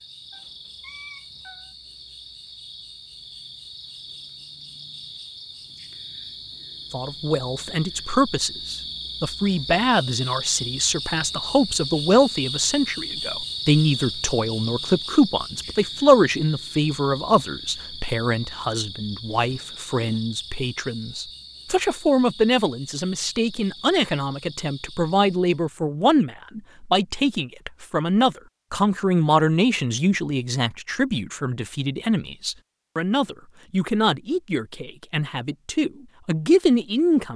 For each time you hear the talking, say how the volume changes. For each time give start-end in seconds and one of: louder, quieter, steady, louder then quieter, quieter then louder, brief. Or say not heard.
6.9-37.3 steady.